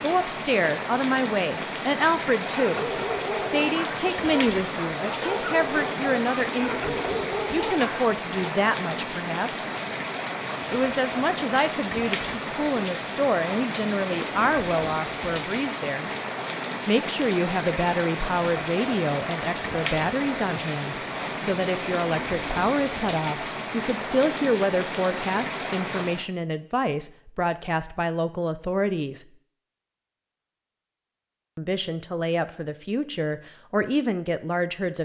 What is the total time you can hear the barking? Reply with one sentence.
The barking can be heard for 6 seconds in total.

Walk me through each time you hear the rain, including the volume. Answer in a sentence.
The rain can be heard from 0.0 to 26.3 s, at a steady volume.